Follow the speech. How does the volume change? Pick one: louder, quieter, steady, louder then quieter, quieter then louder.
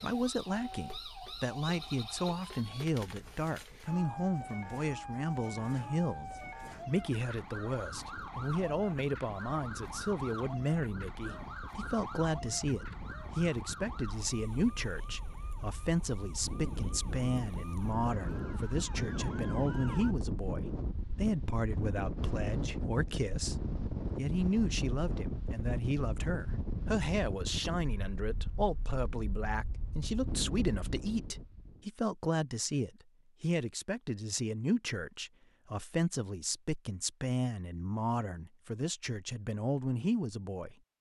steady.